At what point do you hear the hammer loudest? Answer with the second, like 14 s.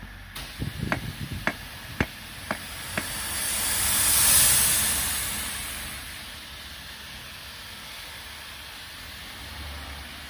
1 s.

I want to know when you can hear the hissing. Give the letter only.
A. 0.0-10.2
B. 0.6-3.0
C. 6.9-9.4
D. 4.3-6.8
A.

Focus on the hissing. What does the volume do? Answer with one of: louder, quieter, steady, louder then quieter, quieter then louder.
louder then quieter.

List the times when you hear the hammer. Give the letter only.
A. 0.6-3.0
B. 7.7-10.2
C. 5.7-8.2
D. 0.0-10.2
A.